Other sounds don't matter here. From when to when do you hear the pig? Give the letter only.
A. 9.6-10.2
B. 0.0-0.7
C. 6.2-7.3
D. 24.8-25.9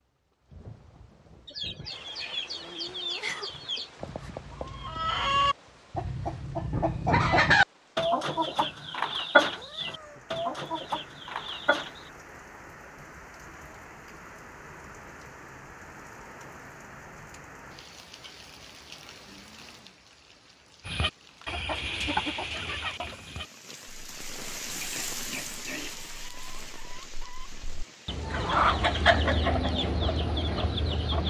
D.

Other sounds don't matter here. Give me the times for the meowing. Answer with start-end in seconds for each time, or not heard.
9.6-10.2.